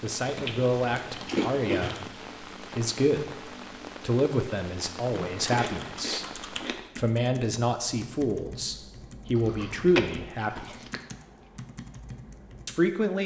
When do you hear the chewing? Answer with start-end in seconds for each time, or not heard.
0.3-2.0, 5.3-6.8, 9.3-11.0.